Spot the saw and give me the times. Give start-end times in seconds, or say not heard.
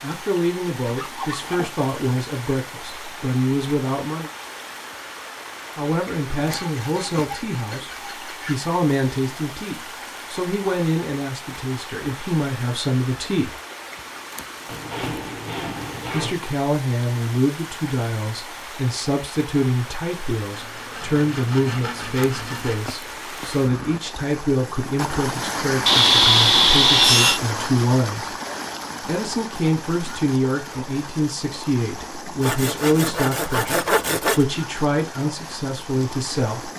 0.8-1.9, 6.3-8.6, 14.7-16.4, 20.5-22.9, 25.9-27.4, 32.4-34.5.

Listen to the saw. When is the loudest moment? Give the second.
26 s.